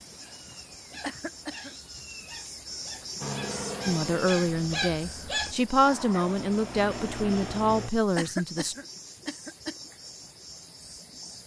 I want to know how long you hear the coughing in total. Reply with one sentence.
You can hear the coughing for 2 seconds altogether.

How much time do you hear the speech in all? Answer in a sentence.
You can hear the speech for 5 seconds altogether.